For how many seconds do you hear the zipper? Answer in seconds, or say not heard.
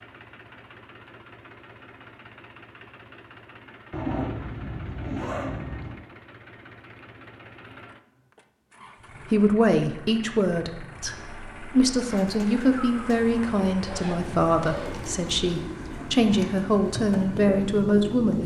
5 s.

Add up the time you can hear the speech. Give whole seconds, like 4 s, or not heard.
9 s.